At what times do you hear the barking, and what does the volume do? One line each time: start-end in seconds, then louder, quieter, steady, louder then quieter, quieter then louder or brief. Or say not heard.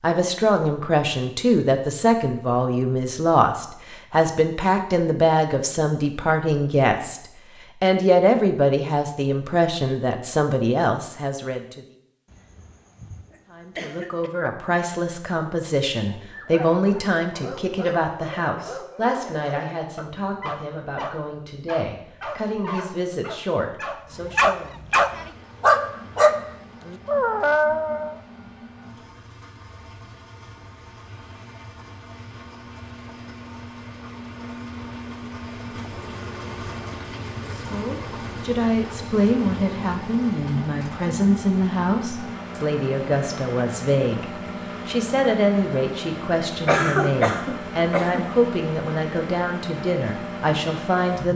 16.1-28.1 louder.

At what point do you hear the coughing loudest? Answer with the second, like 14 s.
47 s.